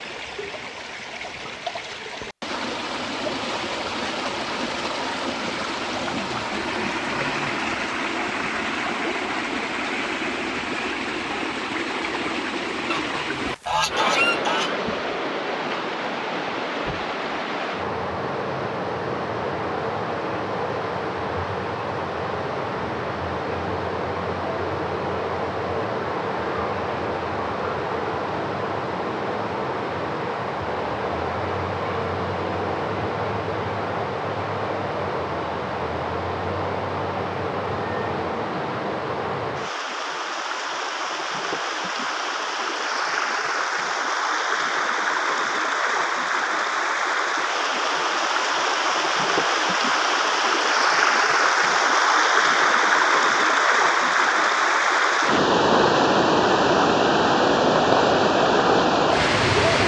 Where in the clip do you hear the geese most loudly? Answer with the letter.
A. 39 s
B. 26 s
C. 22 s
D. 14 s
D.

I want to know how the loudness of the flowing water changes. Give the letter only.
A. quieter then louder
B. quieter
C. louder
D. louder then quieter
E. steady
C.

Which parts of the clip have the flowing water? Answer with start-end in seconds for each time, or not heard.
0.0-59.8.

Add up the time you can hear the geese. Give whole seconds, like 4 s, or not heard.
2 s.